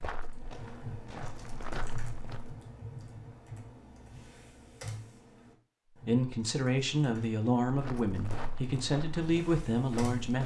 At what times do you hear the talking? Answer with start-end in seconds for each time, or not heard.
6.0-10.4.